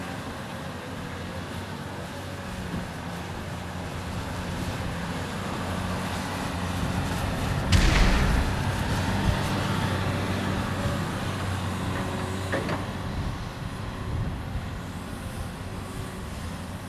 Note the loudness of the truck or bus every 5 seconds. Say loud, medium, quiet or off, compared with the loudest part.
medium, loud, loud, medium.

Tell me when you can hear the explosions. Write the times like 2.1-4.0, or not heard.
7.7-8.6.